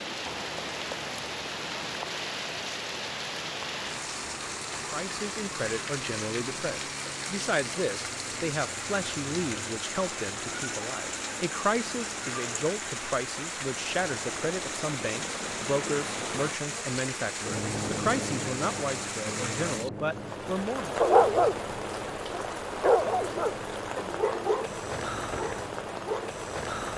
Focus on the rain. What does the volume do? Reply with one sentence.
The volume of the rain stays about the same.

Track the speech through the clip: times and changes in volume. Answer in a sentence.
The speech can be heard from 4.9 to 21.1 s, at a steady volume.